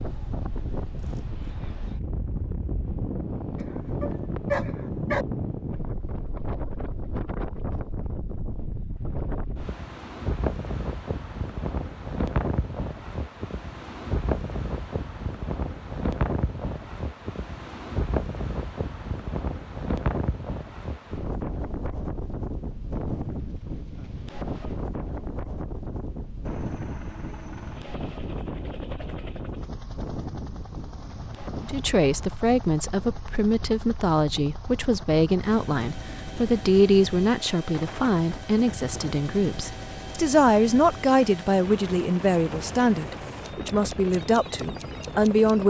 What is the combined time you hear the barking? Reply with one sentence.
You can hear the barking for 2 seconds altogether.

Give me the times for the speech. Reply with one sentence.
The speech can be heard from 31.6 to 45.6 s.